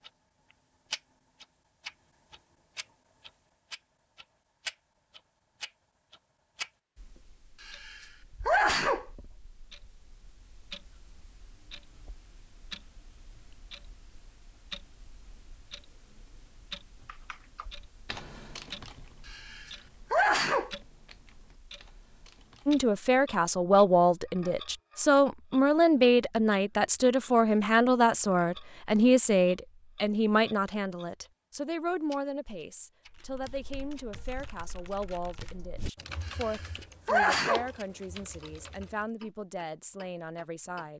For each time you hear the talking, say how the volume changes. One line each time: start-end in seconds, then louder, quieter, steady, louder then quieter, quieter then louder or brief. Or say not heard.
22.6-40.9 quieter.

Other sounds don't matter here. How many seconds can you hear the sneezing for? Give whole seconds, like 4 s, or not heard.
4 s.